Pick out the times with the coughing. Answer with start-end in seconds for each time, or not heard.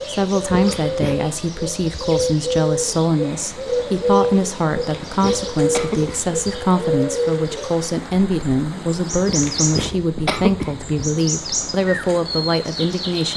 0.5-1.3, 4.8-6.4, 9.2-10.8.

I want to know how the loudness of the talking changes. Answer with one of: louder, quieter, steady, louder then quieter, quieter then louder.
steady.